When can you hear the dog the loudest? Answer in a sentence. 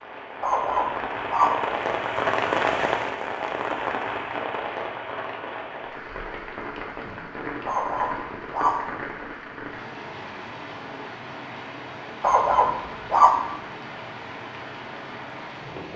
The volume of the dog peaks at 13 seconds.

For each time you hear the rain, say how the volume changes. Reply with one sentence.
The rain can be heard from 0.0 to 15.9 s, getting quieter.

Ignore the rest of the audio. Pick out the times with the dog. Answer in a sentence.
The dog can be heard from 0.4 to 1.8 s, from 7.7 to 9.0 s and from 12.2 to 13.6 s.